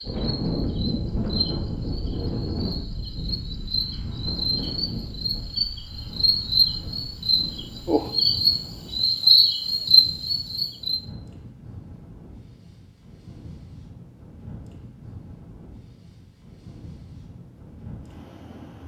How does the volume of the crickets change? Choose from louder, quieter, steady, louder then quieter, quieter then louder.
louder.